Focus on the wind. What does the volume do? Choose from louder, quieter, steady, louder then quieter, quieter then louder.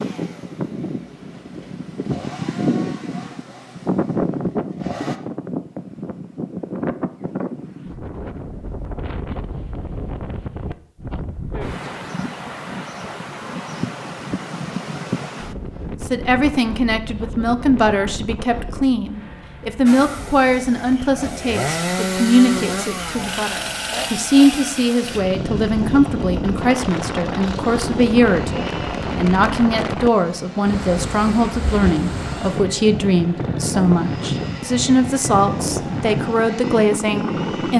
quieter then louder.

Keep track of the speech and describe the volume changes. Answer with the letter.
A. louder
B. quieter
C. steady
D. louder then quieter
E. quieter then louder
C.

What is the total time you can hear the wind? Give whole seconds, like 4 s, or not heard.
38 s.